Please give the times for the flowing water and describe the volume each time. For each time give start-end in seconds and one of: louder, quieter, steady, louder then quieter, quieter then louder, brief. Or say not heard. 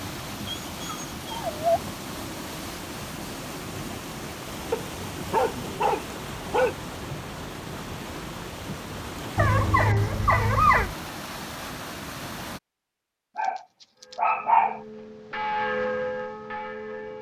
0.0-12.6 steady.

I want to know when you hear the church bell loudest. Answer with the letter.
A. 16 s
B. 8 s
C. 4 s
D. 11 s
A.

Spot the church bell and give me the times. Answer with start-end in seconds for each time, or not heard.
14.0-17.1.